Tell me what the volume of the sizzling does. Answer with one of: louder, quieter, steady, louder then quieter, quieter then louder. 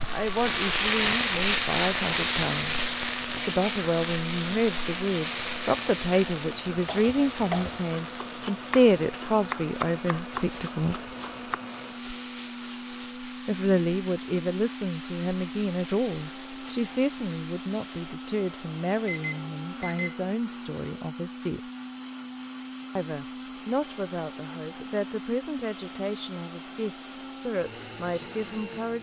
quieter.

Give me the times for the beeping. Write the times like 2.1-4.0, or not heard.
19.1-20.2.